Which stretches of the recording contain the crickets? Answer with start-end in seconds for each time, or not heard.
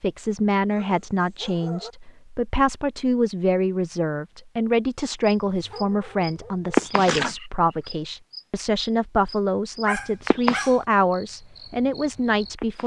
5.2-12.8.